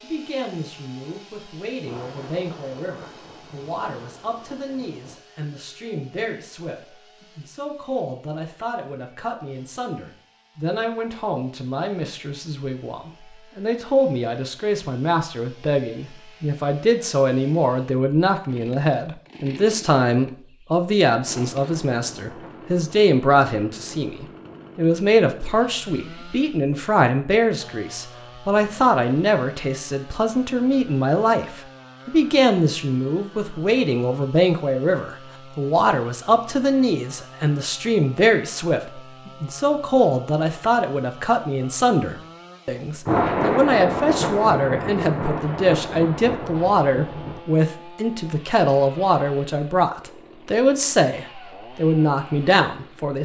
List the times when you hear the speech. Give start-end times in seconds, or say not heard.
0.0-53.1.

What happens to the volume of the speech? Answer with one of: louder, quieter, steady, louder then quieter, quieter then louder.
louder.